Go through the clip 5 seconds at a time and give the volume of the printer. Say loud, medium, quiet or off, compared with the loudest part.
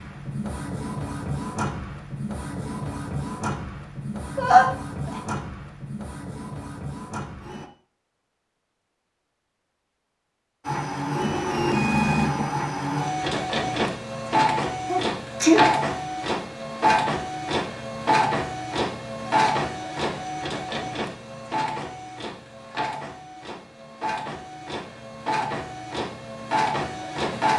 medium, medium, loud, loud, medium, loud.